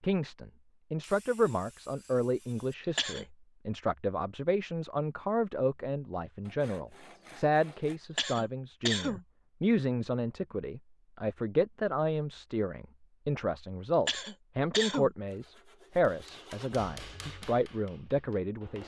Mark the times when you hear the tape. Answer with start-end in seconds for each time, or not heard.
not heard.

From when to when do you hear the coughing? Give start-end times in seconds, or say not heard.
2.8-3.2, 8.0-9.2, 13.9-15.2.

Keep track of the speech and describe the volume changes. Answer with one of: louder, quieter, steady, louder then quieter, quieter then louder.
steady.